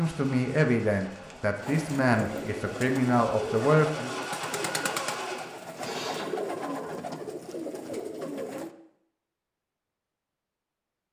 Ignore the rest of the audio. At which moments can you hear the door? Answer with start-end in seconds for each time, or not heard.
not heard.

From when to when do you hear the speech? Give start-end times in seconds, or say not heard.
0.0-4.1.